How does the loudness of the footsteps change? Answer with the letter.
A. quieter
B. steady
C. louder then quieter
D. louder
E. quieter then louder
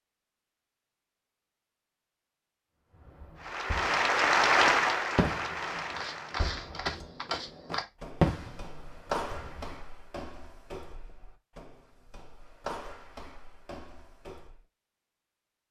E.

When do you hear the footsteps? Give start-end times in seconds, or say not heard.
5.9-14.6.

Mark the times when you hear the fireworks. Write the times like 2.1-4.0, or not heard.
3.0-4.0, 5.2-5.8, 6.4-7.0, 8.2-9.7.